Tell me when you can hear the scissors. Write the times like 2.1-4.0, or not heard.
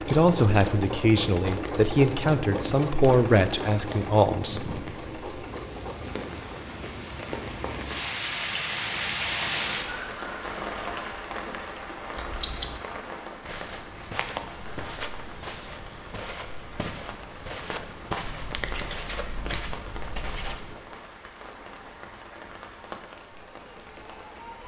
0.1-0.8, 12.2-12.8, 18.2-20.6.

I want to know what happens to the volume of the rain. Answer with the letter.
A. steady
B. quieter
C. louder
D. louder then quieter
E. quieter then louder
D.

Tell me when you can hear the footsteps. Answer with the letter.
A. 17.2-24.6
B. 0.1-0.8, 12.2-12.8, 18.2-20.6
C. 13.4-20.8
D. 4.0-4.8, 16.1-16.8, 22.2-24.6
C.